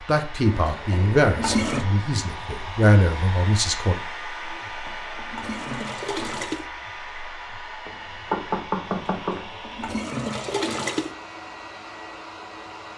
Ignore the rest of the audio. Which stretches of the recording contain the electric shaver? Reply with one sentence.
The electric shaver can't be heard in this clip.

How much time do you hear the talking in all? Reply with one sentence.
You can hear the talking for 4 seconds altogether.